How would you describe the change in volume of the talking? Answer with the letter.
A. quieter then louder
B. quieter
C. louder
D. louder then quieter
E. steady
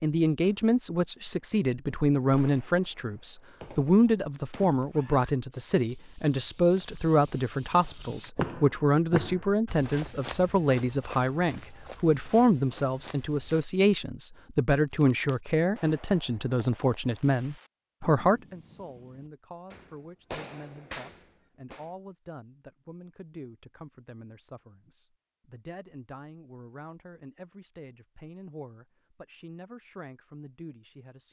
B.